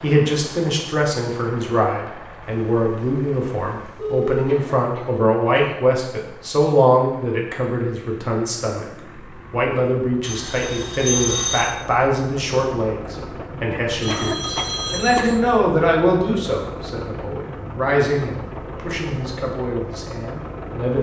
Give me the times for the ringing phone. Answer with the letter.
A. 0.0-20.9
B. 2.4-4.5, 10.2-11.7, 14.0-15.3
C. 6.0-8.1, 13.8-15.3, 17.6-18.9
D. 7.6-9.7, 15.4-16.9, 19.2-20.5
B.